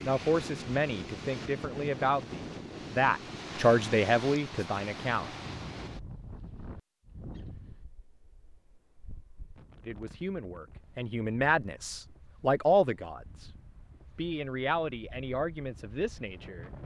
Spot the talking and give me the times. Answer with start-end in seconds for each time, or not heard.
0.0-5.3, 9.8-13.5, 14.2-16.7.